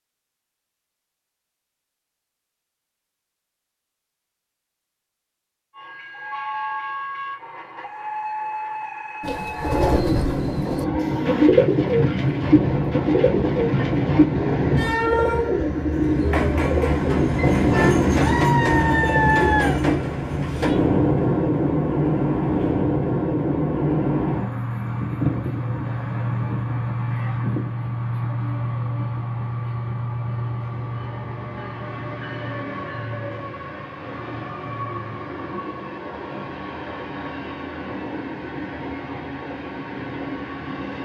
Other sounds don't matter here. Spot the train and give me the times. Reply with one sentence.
The train can be heard from 5.8 to 40.9 s.